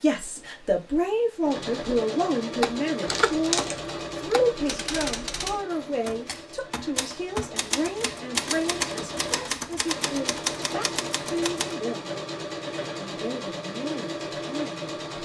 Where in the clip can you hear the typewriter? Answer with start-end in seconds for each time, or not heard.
2.6-11.8.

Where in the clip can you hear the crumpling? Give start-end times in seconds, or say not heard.
3.0-3.9.